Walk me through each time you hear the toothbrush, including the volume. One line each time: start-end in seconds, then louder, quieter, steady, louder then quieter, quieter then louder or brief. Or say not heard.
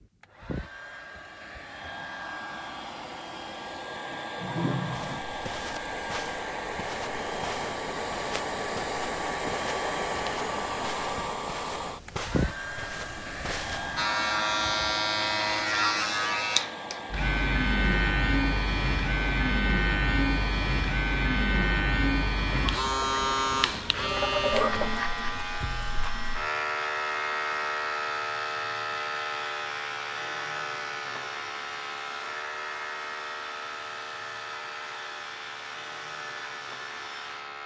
not heard.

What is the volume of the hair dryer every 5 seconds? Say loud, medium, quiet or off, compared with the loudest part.
medium, loud, loud, medium, medium, medium, medium, medium.